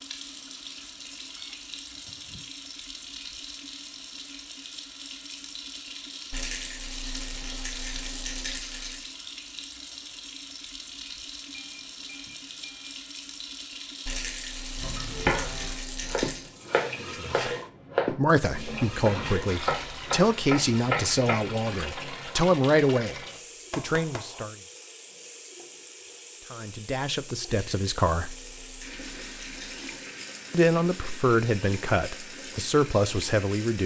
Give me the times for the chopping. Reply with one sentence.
You can hear the chopping from 14.8 to 21.5 s.